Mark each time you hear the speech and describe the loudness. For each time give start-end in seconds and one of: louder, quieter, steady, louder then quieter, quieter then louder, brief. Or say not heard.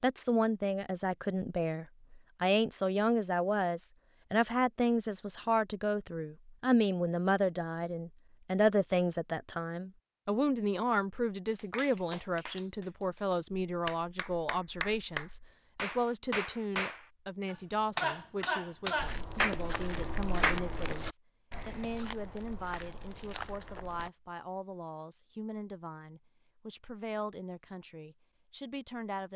0.0-29.3 quieter.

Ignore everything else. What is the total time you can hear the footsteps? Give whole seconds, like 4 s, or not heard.
5 s.